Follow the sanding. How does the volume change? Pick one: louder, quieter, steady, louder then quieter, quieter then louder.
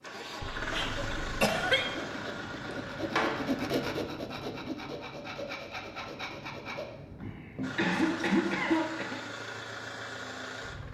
louder then quieter.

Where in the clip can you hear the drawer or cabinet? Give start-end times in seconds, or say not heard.
2.6-3.5.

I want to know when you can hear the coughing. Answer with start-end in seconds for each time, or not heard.
0.4-1.9, 7.2-9.2.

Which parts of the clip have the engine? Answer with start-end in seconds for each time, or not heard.
0.0-3.8, 7.6-10.8.